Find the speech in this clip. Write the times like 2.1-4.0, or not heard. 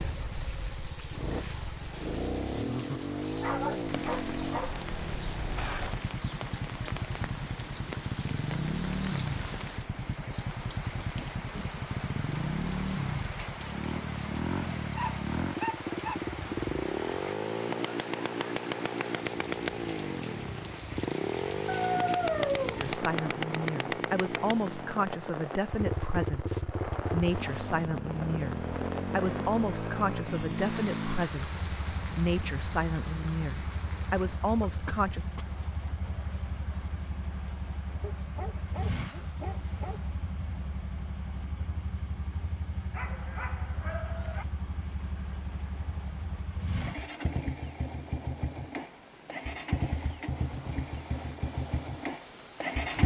22.8-35.2.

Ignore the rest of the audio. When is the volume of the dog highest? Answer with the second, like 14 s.
22 s.